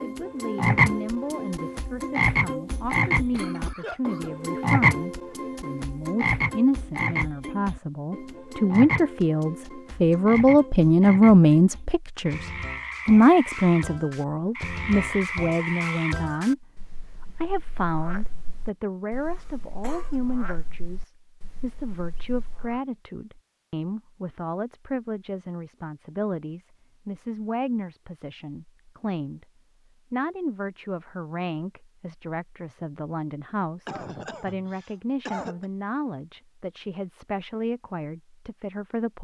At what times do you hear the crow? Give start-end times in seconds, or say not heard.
not heard.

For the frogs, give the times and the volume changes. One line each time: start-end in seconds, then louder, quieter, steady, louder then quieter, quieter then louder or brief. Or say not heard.
0.0-22.8 quieter.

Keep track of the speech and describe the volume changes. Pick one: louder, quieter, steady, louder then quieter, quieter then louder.
louder then quieter.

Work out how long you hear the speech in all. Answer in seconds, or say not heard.
38 s.